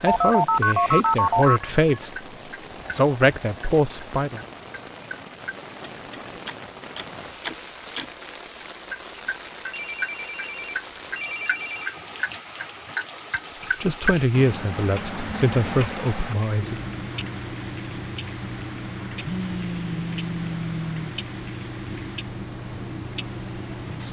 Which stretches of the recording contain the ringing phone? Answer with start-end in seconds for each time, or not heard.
0.1-2.0, 9.7-11.9, 19.2-21.1.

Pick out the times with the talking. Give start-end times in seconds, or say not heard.
0.0-2.1, 2.9-4.4, 13.8-16.8.